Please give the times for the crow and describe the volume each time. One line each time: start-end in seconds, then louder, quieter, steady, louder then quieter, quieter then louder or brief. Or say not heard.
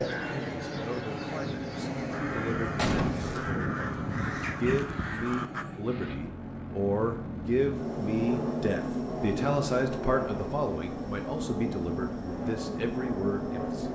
0.0-5.7 louder.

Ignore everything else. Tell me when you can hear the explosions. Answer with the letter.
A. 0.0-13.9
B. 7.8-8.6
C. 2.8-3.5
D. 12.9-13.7
C.